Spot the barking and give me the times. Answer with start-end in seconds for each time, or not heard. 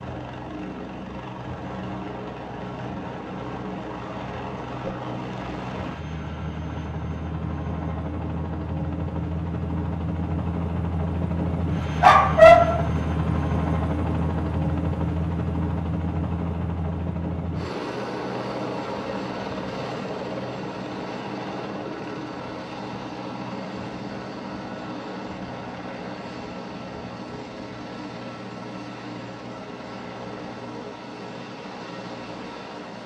12.0-12.8.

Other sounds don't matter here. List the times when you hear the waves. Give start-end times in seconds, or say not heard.
not heard.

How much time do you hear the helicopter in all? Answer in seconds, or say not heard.
33 s.